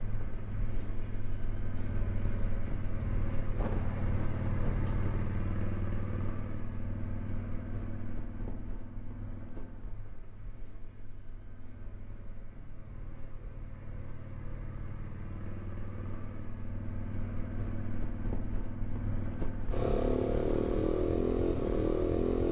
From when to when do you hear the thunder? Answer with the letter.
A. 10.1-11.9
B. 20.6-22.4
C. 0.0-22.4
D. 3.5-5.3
D.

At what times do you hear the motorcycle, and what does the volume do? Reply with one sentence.
The motorcycle can be heard from 0.0 to 22.4 s, getting quieter then louder.